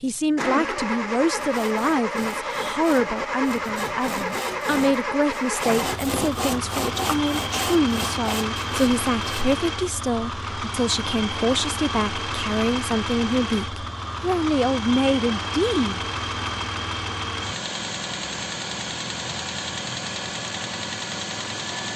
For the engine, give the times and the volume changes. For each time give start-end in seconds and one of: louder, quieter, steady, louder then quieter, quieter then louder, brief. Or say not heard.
0.0-21.9 steady.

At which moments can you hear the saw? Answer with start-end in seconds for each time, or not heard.
1.4-9.6.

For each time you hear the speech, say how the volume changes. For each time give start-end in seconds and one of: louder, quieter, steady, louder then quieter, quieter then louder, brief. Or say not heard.
0.0-16.1 steady.